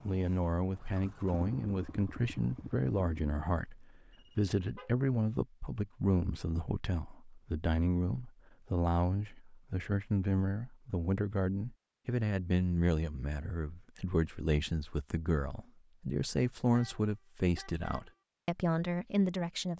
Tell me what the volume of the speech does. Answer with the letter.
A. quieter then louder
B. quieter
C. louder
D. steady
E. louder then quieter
D.